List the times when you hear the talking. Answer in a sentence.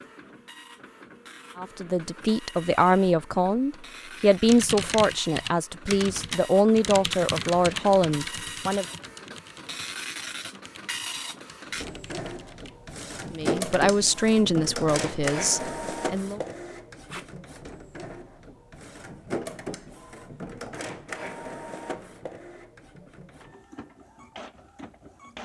You can hear the talking from 1.6 to 8.8 s and from 13.3 to 16.4 s.